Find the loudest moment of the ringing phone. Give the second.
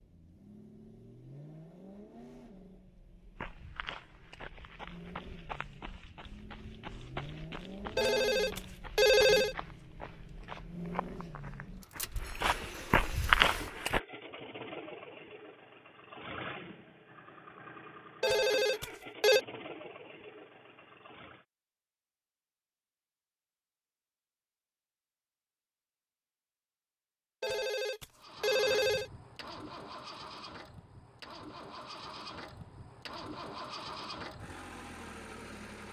9 s.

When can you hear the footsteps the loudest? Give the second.
13 s.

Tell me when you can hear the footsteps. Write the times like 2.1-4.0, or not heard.
3.4-14.0.